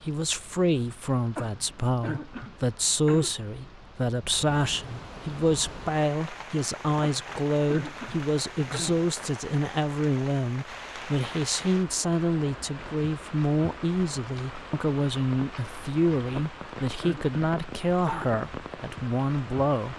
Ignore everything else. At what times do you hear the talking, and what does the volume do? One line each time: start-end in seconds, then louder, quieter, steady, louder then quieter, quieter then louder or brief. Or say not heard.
0.0-19.9 steady.